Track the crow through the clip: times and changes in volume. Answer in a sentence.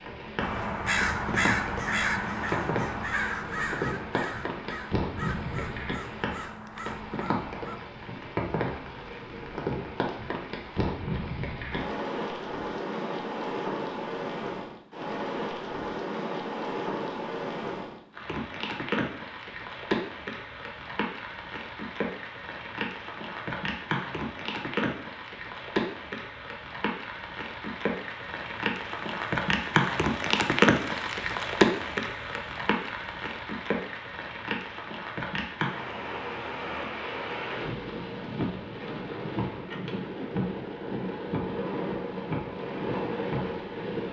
You can hear the crow from 0.3 to 7.8 s, getting quieter.